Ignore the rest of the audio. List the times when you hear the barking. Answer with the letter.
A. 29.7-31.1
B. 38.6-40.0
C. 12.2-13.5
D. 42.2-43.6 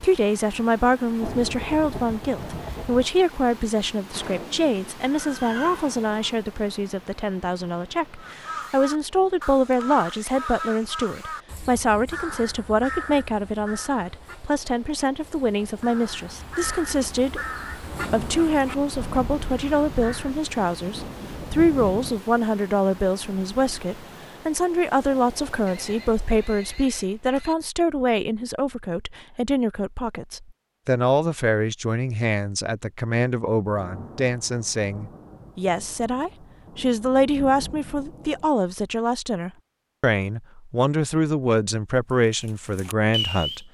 D.